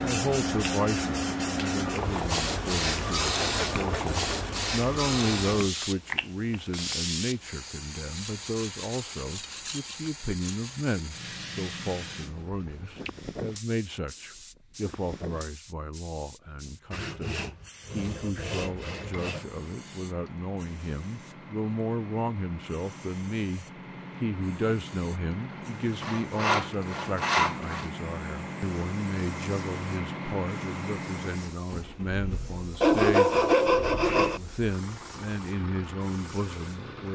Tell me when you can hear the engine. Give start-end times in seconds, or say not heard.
18.6-37.1.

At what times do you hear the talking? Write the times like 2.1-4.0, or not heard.
0.0-33.5, 34.1-37.1.